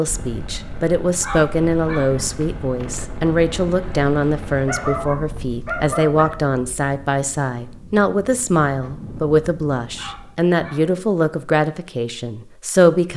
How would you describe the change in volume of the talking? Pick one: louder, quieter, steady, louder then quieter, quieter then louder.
steady.